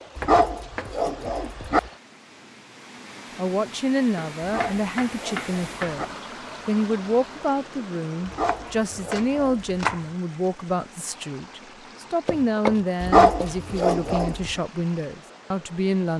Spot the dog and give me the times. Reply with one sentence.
You can hear the dog from 0.1 to 1.9 s, from 4.4 to 6.2 s, from 8.2 to 9.7 s and from 13.0 to 14.6 s.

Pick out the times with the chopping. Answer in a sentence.
The chopping can be heard from 0.1 to 0.9 s, from 4.2 to 6.0 s, from 8.2 to 10.1 s and from 12.2 to 14.2 s.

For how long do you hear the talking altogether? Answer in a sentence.
The talking can be heard for 13 seconds in total.